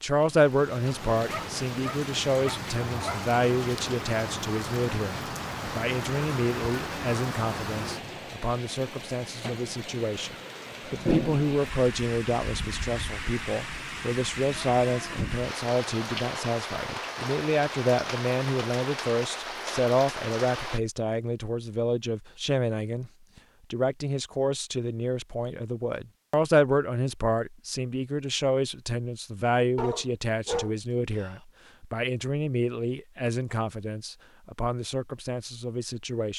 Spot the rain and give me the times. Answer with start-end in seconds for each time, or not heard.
0.1-20.8.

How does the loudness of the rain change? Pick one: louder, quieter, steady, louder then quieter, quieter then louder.
steady.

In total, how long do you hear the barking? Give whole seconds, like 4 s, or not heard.
4 s.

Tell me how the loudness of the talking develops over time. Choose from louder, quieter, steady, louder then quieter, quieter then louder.
steady.